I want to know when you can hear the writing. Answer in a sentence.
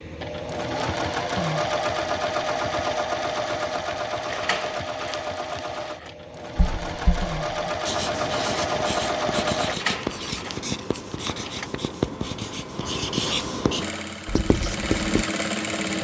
The writing can be heard from 6.5 to 15.2 s.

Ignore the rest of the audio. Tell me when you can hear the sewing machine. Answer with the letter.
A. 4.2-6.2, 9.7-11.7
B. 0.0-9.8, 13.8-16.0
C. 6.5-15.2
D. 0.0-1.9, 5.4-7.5
B.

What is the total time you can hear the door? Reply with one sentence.
The door can be heard for 4 seconds in total.